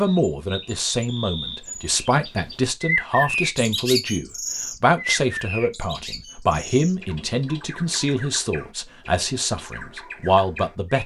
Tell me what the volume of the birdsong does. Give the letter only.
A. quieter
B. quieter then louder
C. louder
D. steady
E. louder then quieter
E.